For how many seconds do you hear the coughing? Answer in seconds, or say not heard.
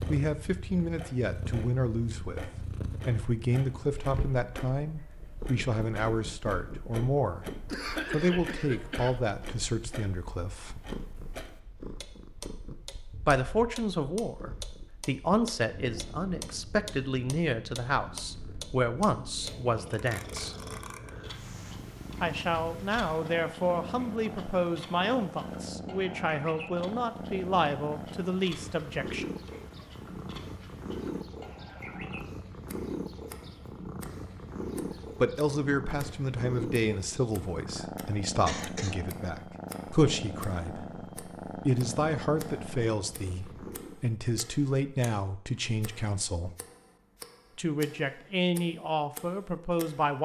2 s.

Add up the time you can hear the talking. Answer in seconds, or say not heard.
39 s.